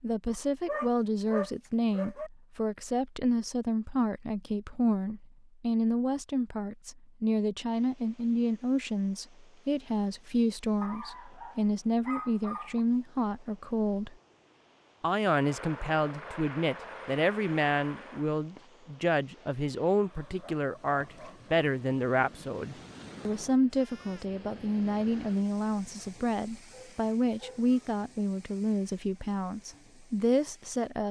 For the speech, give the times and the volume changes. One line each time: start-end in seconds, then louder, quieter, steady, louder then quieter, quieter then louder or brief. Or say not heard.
0.0-14.2 steady
15.0-31.0 steady.